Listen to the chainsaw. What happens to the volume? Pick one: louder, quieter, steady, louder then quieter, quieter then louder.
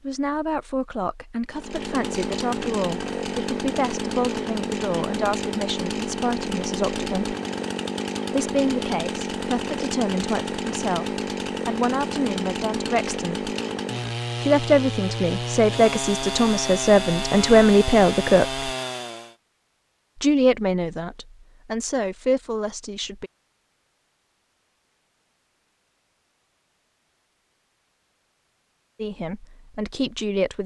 steady.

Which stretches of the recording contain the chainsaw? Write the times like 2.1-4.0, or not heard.
1.5-19.4.